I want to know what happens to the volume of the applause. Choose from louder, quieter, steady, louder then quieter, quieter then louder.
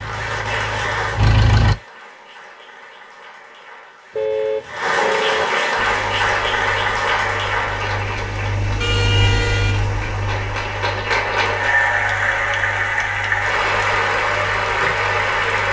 louder.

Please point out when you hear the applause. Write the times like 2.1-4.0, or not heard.
0.0-15.6.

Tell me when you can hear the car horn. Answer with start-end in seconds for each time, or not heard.
4.2-5.5, 8.8-9.8.